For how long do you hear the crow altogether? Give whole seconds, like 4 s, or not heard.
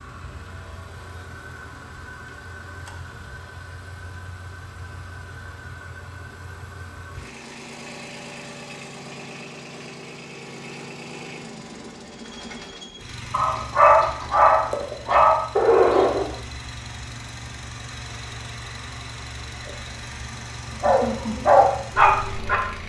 not heard.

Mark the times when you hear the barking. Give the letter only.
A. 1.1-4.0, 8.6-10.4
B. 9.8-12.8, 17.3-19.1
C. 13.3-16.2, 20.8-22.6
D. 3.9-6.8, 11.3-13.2
C.